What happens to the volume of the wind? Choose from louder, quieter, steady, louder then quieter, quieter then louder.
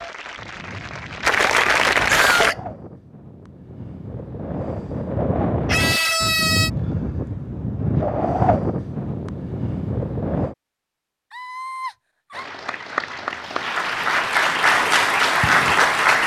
louder.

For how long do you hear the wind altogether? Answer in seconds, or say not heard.
10 s.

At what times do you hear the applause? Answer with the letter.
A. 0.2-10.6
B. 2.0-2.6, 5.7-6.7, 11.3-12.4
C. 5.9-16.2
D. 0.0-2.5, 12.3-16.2
D.